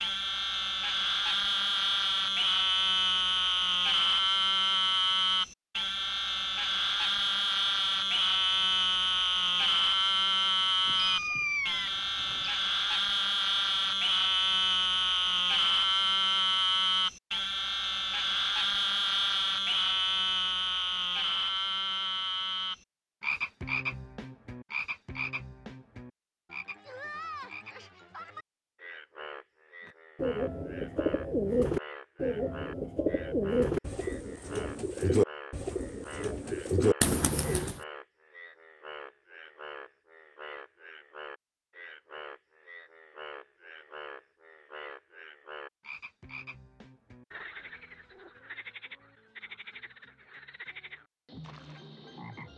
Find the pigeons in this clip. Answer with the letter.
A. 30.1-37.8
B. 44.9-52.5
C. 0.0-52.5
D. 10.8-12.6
A.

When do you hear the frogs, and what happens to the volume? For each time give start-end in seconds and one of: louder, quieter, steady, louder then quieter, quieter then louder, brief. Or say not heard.
0.0-52.5 quieter.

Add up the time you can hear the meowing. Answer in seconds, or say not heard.
2 s.